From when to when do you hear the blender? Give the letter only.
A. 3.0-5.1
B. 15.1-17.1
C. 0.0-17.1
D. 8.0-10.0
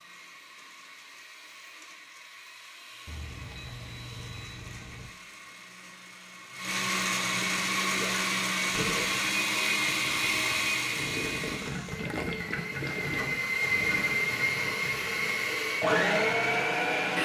C.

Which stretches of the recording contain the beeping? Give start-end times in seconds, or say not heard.
3.0-5.1.